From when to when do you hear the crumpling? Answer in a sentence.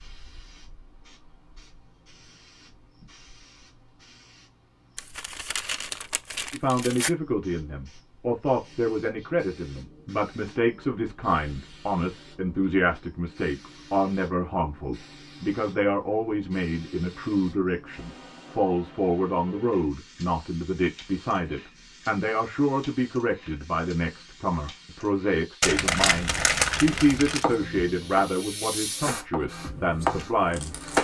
The crumpling can be heard from 5.0 to 7.1 s and from 25.6 to 27.4 s.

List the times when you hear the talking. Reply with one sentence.
The talking can be heard from 6.5 to 30.8 s.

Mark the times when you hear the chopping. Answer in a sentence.
You can hear the chopping from 27.4 to 31.0 s.